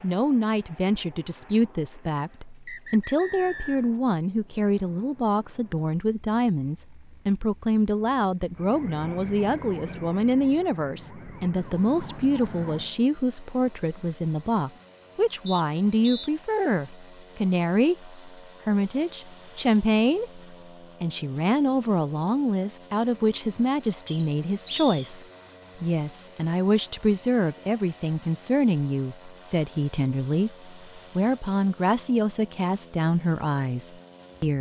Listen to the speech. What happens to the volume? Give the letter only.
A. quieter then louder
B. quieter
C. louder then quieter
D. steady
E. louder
D.